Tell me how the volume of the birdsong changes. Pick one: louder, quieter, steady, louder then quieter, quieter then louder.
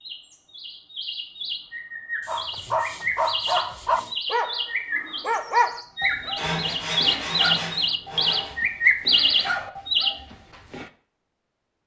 louder.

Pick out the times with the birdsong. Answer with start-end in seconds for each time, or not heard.
0.0-10.1.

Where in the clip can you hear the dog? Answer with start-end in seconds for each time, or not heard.
2.2-10.9.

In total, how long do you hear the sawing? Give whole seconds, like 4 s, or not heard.
4 s.